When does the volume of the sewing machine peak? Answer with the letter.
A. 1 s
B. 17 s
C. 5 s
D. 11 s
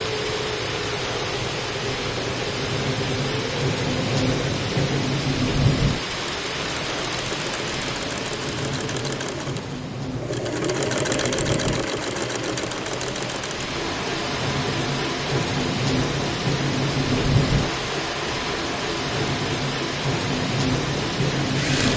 D.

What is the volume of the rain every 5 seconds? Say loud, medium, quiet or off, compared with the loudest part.
loud, loud, medium, loud, loud.